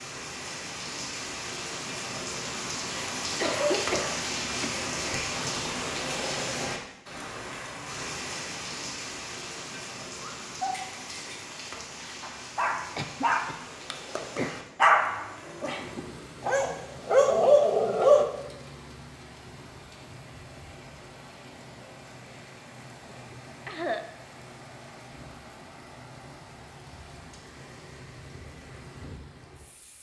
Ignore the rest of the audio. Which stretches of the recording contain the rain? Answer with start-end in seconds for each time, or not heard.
0.0-29.9.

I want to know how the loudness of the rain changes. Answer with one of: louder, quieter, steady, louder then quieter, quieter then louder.
quieter.